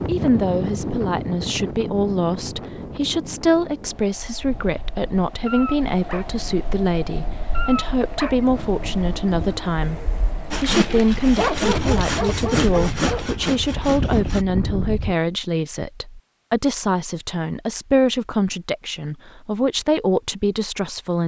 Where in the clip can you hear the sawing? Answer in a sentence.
You can hear the sawing from 10.5 to 14.4 s.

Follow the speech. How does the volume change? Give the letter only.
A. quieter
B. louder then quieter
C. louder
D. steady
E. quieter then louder
D.